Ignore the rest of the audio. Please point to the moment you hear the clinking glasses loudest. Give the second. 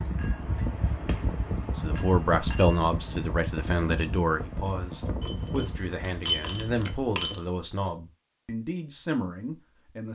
6 s.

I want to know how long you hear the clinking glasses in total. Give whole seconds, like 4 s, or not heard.
4 s.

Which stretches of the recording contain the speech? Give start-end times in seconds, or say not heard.
1.8-10.1.